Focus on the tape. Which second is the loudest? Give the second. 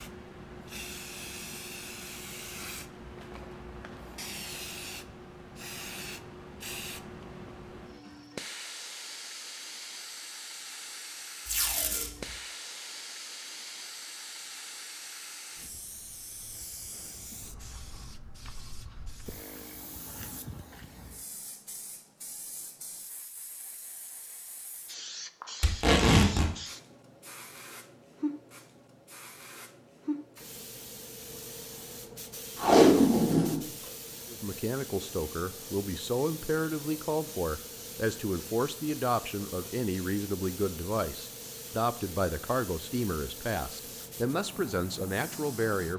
33 s.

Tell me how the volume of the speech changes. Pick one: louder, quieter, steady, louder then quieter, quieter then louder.
steady.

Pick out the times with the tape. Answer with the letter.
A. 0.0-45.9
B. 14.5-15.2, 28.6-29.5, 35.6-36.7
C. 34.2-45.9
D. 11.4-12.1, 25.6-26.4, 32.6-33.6
D.